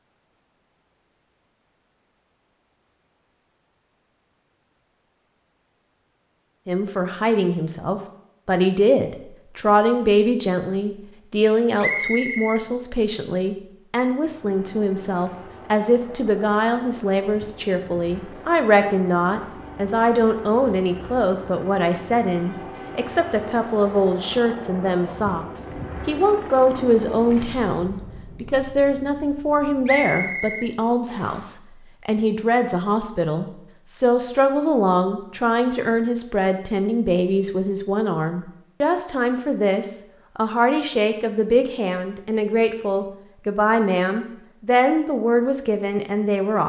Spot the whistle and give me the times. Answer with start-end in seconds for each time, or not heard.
11.8-12.6, 29.9-31.4.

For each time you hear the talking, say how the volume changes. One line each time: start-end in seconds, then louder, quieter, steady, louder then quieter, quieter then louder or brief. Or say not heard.
6.7-46.6 steady.